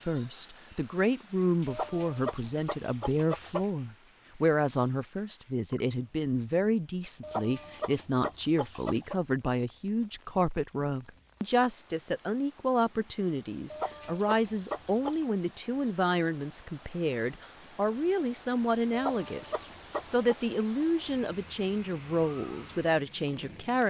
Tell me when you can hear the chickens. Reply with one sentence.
You can hear the chickens from 1.6 to 3.7 s, from 7.2 to 9.2 s, from 13.7 to 15.2 s and from 18.9 to 20.4 s.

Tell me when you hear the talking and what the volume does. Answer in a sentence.
You can hear the talking from 0.1 to 23.8 s, at a steady volume.